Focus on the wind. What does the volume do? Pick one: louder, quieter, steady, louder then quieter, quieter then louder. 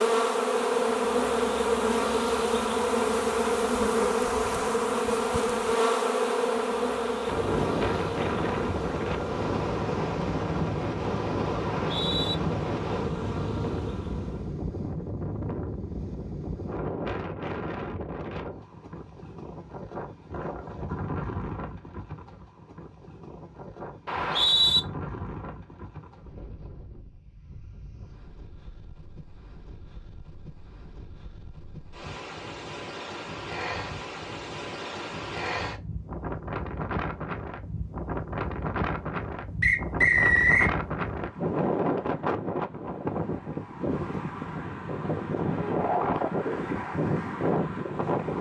quieter then louder.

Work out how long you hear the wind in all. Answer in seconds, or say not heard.
41 s.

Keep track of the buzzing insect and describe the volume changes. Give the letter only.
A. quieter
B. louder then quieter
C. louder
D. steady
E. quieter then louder
A.